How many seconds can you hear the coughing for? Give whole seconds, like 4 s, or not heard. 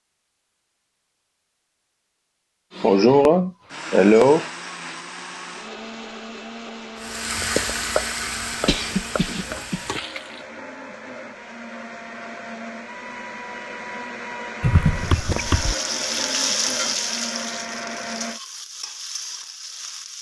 4 s.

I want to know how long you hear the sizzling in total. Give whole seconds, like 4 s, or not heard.
9 s.